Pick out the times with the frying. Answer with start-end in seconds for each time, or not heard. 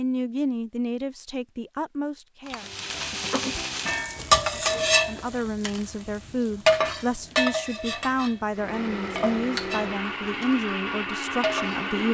2.5-12.1.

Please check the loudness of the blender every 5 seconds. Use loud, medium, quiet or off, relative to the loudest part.
off, loud, loud.